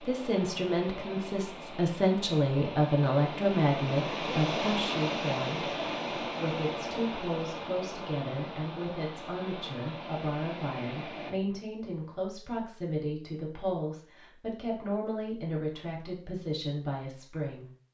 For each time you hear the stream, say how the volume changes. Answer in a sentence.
The stream can be heard from 0.0 to 11.3 s, getting louder then quieter.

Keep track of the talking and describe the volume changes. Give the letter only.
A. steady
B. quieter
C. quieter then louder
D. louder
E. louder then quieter
B.